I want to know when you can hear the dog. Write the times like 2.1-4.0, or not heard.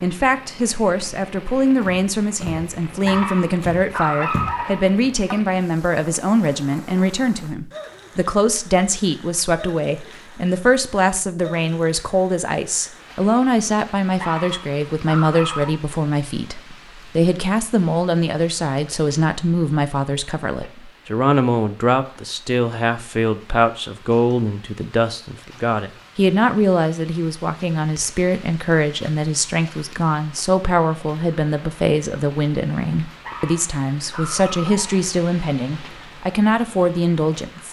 3.0-5.4, 14.2-15.8, 33.2-35.1.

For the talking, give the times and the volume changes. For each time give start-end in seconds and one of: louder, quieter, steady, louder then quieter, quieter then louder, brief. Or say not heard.
0.0-37.6 steady.